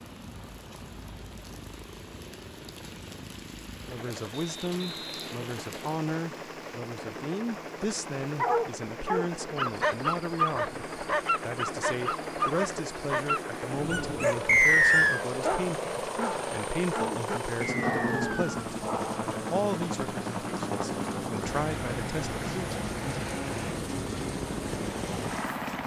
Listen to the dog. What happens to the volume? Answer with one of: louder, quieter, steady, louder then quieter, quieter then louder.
quieter.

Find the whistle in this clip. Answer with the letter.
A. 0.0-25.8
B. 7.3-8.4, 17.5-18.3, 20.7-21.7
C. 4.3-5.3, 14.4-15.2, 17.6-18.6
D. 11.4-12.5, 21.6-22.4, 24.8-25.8
C.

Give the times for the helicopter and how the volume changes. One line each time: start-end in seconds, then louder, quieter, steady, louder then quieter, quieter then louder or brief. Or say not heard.
0.0-25.8 louder.